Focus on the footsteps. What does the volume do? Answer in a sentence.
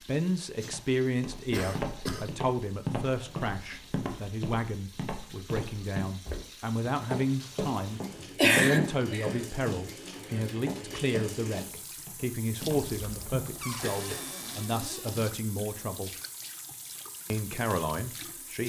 The loudness of the footsteps goes down.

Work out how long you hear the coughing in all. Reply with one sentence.
The coughing can be heard for 4 seconds in total.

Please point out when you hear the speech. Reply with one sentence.
The speech can be heard from 0.0 to 16.1 s and from 17.3 to 18.6 s.